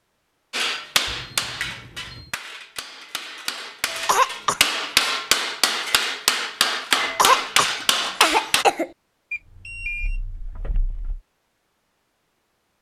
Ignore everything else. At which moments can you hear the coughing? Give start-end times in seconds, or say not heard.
3.9-4.6, 7.0-8.9.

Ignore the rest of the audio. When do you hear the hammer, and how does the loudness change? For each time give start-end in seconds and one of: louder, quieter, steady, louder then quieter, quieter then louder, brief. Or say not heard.
0.5-8.7 quieter then louder.